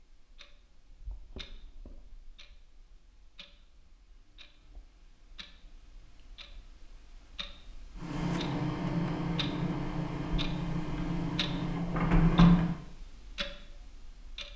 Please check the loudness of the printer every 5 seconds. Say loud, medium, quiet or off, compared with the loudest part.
off, medium, loud.